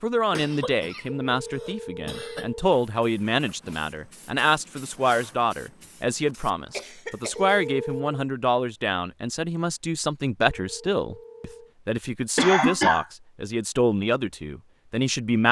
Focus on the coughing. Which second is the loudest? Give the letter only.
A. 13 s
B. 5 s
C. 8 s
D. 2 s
A.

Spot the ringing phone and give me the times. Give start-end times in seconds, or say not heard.
1.1-2.7, 7.3-8.2, 10.4-11.8.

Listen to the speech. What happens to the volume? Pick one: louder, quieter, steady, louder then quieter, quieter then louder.
steady.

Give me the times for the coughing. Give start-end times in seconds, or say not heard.
0.3-2.5, 6.7-7.5, 12.3-13.1.